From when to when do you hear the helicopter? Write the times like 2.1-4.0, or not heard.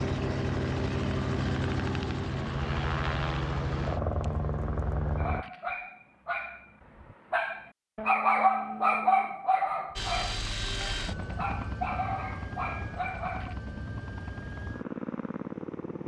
0.0-5.5, 9.9-16.0.